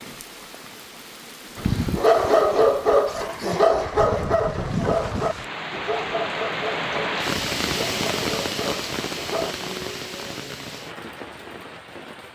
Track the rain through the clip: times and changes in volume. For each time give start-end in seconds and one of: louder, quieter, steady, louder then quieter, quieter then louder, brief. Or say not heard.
0.0-12.3 louder then quieter.